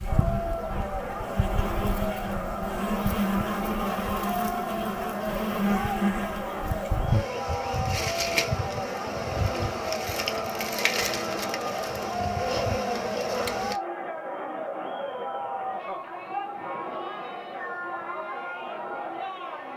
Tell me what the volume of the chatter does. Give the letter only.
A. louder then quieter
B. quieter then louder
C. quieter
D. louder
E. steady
E.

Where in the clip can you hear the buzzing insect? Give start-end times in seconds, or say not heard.
0.0-13.8.